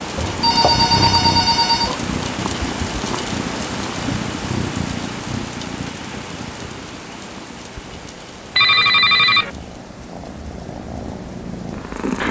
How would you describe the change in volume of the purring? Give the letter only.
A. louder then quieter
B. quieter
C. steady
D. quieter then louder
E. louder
D.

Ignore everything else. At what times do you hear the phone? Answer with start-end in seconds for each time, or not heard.
0.1-1.9, 8.6-9.5.